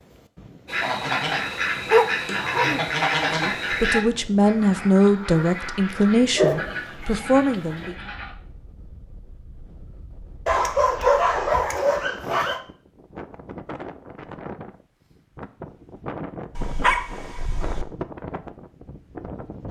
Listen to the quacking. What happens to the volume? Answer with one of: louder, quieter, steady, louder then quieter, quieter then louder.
quieter.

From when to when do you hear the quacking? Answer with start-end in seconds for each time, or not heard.
0.7-8.3.